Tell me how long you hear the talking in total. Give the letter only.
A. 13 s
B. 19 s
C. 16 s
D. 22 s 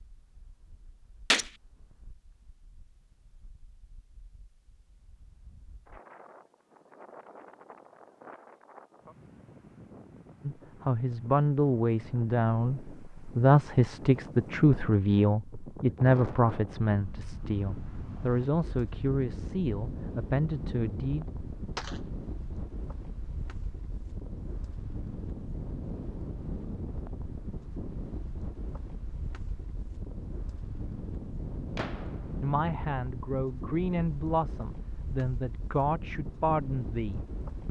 C.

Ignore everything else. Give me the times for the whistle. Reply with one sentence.
You can't hear the whistle here.